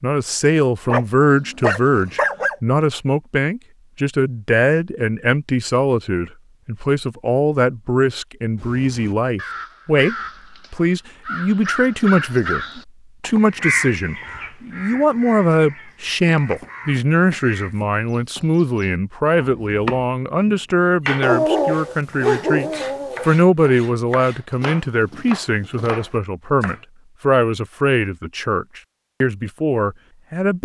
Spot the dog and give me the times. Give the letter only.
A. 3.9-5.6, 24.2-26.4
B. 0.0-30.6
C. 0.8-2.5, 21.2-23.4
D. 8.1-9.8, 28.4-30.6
C.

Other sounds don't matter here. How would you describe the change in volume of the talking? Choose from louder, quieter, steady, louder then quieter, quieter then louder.
steady.